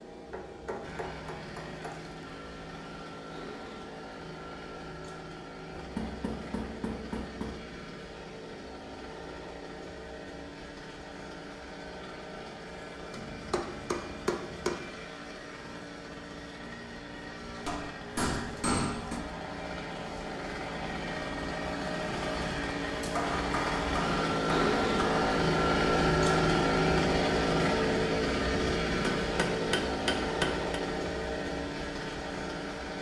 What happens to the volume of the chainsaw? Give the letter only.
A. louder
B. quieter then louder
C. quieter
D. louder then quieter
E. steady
A.